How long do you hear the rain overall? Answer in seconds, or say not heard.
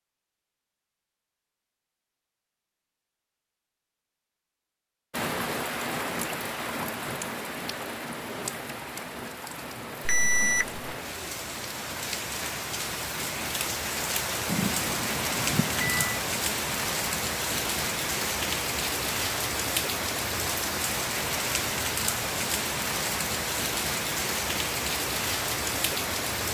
21 s.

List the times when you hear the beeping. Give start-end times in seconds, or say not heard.
10.1-10.8, 14.4-16.2.